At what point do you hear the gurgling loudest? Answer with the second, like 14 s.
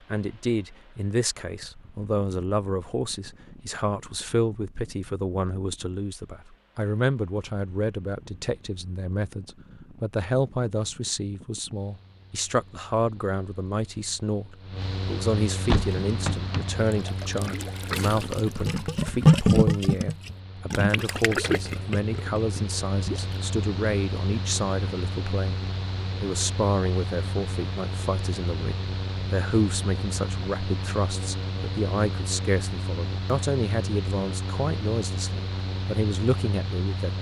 19 s.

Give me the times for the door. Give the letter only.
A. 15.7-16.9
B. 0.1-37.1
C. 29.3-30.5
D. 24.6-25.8
A.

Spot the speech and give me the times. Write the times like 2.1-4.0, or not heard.
0.1-37.1.